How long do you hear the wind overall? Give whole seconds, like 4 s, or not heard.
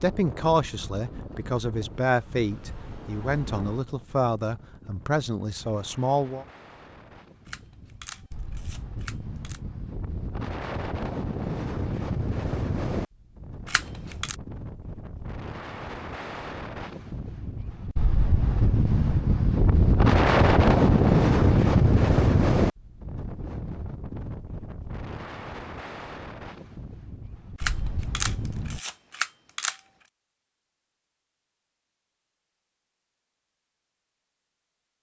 29 s.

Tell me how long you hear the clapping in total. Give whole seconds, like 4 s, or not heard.
not heard.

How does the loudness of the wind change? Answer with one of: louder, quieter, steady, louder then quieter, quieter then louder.
louder then quieter.